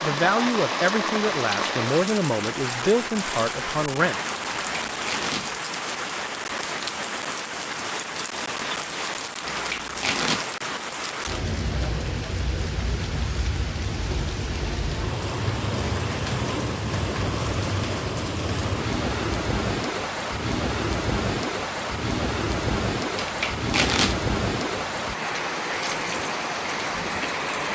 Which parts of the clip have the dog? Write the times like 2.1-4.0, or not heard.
not heard.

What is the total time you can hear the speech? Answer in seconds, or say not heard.
4 s.